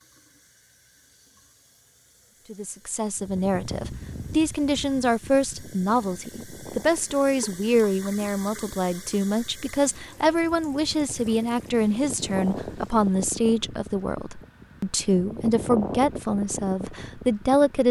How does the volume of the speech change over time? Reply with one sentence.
The volume of the speech stays about the same.